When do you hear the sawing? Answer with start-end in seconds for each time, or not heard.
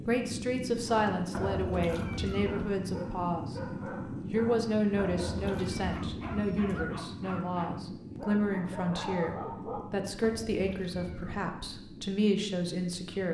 not heard.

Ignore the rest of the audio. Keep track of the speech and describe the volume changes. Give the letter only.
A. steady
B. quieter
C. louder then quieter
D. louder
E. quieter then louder
A.